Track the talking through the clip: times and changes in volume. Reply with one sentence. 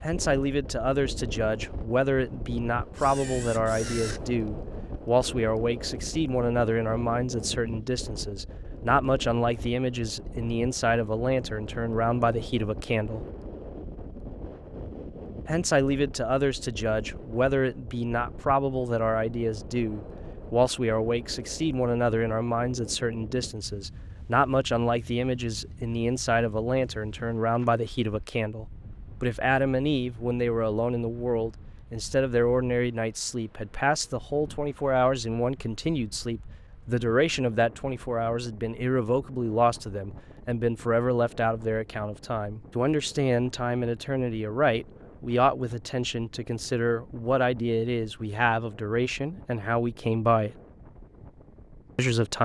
The talking can be heard from 0.0 to 13.2 s, at a steady volume; from 15.4 to 50.5 s, at a steady volume; and briefly from 52.0 to 52.4 s.